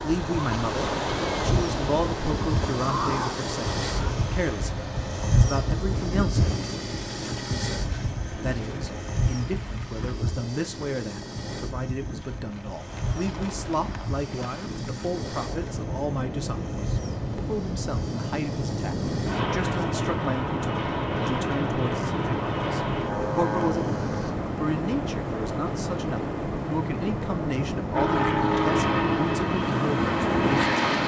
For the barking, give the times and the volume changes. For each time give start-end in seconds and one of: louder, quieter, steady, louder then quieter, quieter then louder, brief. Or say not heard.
not heard.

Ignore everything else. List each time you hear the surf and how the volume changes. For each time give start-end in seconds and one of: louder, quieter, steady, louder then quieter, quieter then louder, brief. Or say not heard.
0.0-31.0 quieter then louder.